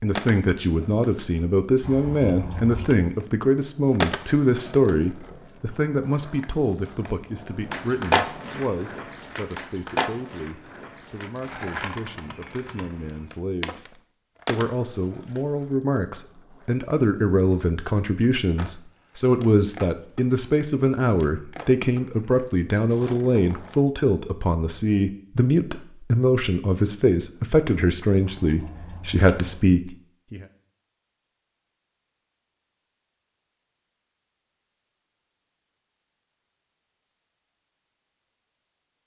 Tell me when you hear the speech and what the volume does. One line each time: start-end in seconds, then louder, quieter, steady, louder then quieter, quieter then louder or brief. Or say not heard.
0.0-30.4 quieter then louder.